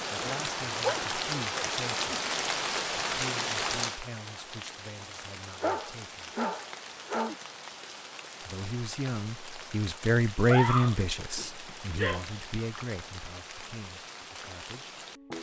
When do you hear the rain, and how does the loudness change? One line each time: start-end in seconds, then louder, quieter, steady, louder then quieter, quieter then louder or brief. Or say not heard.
0.0-15.3 quieter.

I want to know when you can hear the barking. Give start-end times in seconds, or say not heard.
0.1-2.2, 5.6-7.3, 10.4-12.4.